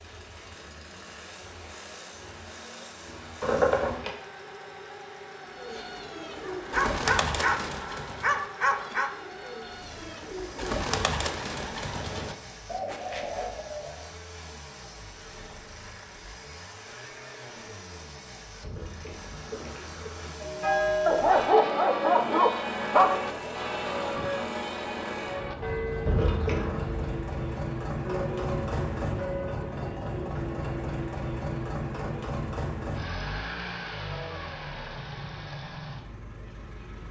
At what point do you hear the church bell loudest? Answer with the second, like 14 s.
21 s.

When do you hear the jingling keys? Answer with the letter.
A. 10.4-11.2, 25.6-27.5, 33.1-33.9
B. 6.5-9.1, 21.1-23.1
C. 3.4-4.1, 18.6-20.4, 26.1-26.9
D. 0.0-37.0
C.